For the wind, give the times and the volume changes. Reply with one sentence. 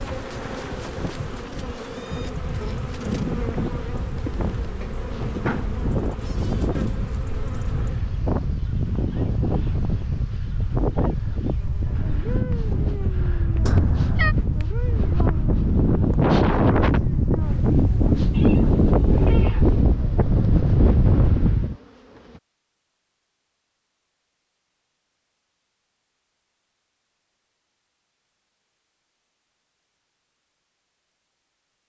You can hear the wind from 0.0 to 21.8 s, getting louder.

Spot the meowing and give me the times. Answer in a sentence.
The meowing can be heard from 13.7 to 14.3 s and from 18.3 to 19.8 s.